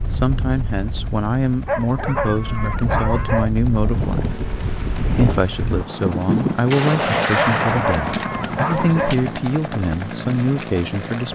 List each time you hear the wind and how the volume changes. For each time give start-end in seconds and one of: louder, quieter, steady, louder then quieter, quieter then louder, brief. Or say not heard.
0.0-6.6 louder.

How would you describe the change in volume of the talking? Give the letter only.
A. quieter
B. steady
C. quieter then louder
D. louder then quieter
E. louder
B.